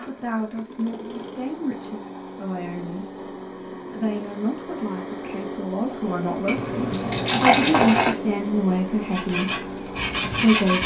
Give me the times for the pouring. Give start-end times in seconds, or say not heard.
6.5-8.2.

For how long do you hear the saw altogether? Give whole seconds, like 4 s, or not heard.
2 s.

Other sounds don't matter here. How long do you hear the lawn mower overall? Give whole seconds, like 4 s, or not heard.
11 s.